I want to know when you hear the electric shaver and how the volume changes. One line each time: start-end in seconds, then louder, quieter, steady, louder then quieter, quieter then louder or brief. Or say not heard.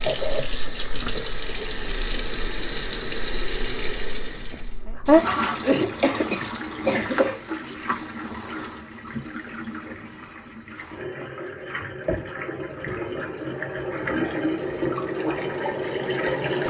not heard.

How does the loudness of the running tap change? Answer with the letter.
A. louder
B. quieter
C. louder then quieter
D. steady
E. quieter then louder
E.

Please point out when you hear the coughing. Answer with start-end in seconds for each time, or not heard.
5.6-7.4.